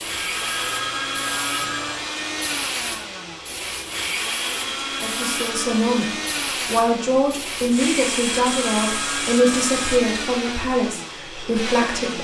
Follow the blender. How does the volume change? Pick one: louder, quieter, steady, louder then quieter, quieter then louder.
steady.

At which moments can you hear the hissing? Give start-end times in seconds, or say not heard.
0.0-10.0.